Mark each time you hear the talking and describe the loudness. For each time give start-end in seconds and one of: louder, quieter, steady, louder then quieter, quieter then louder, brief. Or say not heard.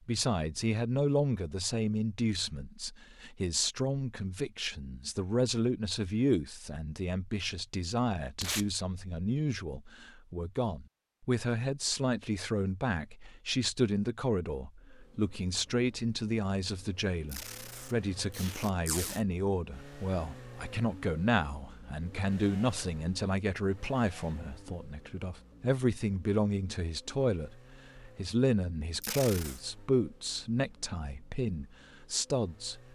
0.1-32.8 steady.